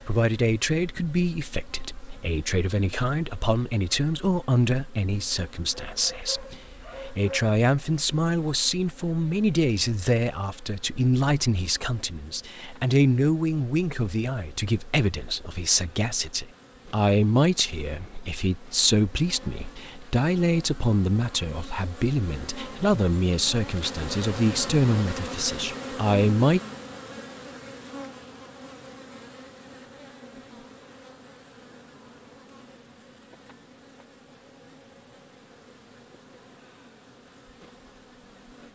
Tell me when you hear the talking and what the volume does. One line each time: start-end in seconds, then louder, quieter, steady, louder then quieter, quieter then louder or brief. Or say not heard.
0.1-26.6 steady.